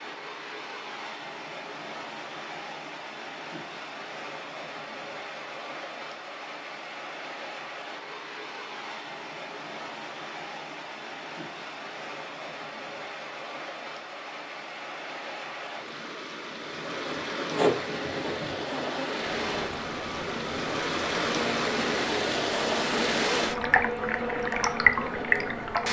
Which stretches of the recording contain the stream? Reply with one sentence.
The stream can be heard from 0.0 to 25.8 s.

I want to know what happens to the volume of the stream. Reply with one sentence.
The loudness of the stream goes up.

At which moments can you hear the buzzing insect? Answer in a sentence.
You can hear the buzzing insect from 16.6 to 25.8 s.